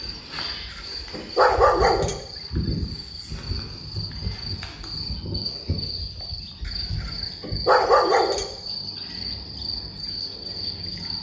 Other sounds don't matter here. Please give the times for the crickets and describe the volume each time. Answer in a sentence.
The crickets can be heard from 0.0 to 11.1 s, at a steady volume.